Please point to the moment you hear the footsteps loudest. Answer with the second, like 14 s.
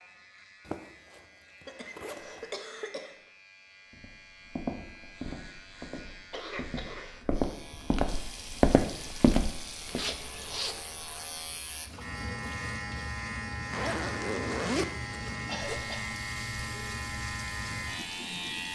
9 s.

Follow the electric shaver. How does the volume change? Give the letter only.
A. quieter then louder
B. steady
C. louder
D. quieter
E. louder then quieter
C.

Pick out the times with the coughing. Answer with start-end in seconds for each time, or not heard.
1.6-3.2, 6.3-7.2, 15.4-16.1.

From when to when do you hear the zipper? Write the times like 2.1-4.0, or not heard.
0.7-2.5, 9.8-10.8, 13.6-15.9.